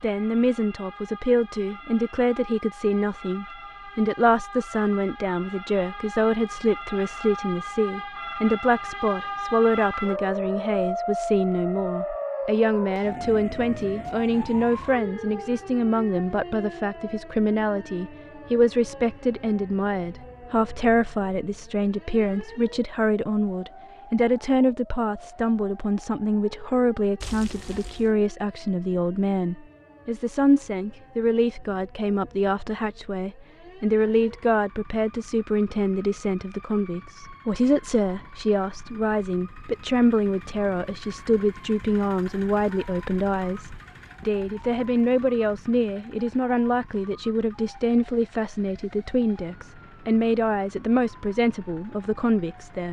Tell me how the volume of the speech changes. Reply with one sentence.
The loudness of the speech stays about the same.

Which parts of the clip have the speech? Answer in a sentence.
The speech can be heard from 0.0 to 52.8 s.